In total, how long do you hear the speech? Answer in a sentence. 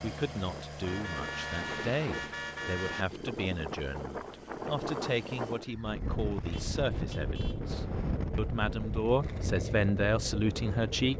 You can hear the speech for 11 seconds altogether.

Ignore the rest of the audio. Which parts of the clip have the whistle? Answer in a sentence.
The whistle can't be heard in this clip.